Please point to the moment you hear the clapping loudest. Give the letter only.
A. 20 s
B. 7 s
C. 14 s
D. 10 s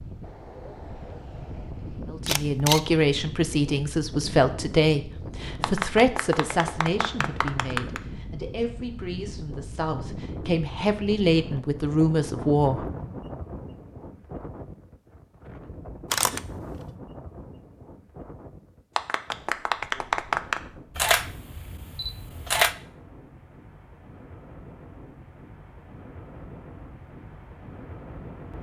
A.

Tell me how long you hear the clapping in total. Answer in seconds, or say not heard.
4 s.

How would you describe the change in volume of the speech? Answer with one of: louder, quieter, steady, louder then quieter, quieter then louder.
quieter then louder.